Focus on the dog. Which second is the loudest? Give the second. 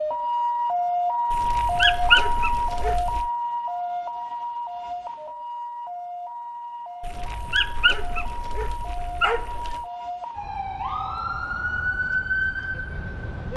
2 s.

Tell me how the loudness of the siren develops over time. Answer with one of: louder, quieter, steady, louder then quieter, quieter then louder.
quieter then louder.